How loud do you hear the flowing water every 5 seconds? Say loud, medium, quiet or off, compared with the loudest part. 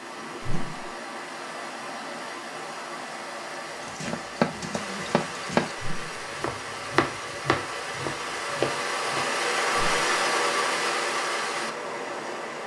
medium, loud, loud.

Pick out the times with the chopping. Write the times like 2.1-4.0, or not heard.
3.9-5.8, 6.3-9.2.